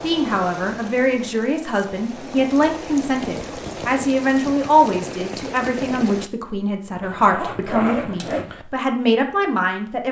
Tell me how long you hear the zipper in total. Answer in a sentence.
You can hear the zipper for 2 seconds altogether.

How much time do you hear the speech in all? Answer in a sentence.
You can hear the speech for 10 seconds altogether.